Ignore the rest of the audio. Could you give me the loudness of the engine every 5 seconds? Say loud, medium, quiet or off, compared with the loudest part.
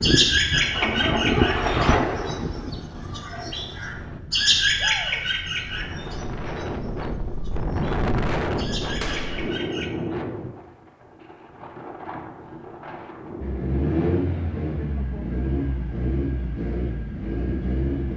loud, off, loud, loud.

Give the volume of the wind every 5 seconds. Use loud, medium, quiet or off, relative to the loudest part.
medium, loud, medium, off.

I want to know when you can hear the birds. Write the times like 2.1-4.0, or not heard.
0.0-9.9.